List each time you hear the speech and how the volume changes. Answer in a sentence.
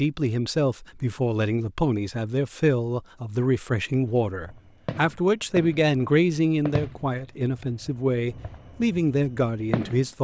You can hear the speech from 0.0 to 10.1 s, at a steady volume.